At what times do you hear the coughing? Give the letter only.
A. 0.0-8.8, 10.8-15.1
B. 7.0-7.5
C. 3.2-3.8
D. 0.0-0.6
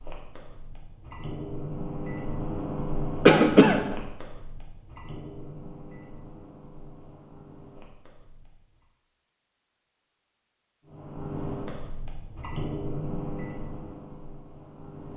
C.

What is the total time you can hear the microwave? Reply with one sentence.
The microwave can be heard for 13 seconds in total.